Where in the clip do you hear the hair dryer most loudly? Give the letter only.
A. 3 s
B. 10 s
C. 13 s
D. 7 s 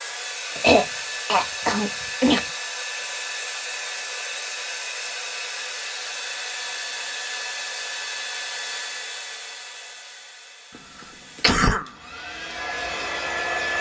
C.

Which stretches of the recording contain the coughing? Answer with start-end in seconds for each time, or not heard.
0.6-2.4, 11.0-11.9.